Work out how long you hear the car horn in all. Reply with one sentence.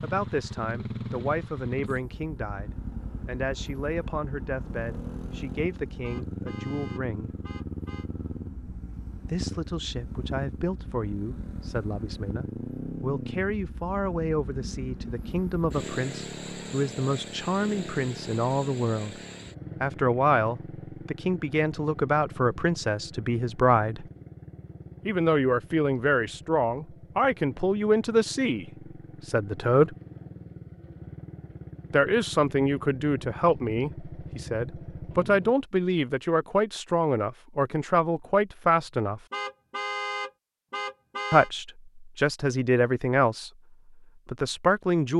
You can hear the car horn for 4 seconds altogether.